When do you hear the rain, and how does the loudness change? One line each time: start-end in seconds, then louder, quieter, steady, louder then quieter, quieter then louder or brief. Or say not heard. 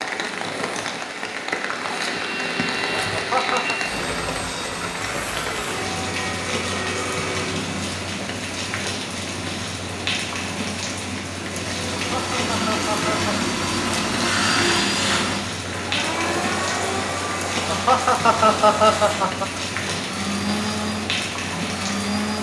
0.0-22.3 steady.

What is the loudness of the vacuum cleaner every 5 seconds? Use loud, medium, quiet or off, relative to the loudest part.
medium, medium, loud, loud, loud.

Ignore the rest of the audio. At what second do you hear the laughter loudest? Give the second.
19 s.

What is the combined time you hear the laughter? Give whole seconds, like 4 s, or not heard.
4 s.